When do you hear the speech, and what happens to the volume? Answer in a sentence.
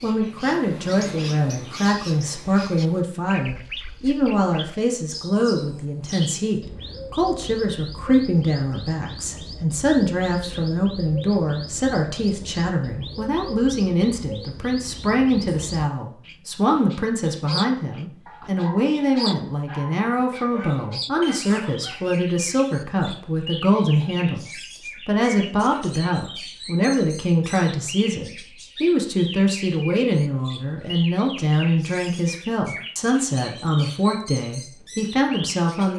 You can hear the speech from 0.0 to 35.9 s, at a steady volume.